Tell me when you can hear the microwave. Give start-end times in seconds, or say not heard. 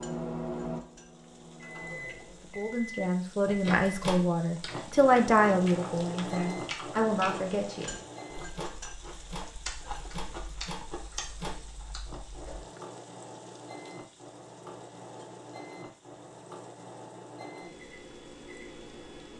0.0-19.3.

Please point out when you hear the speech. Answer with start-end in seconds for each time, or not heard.
2.5-8.0.